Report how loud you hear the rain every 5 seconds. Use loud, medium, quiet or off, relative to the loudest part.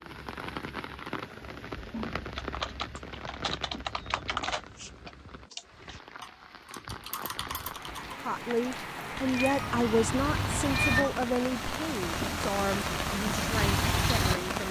medium, medium, loud.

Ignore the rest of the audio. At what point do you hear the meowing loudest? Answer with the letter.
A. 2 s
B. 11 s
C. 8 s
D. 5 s
B.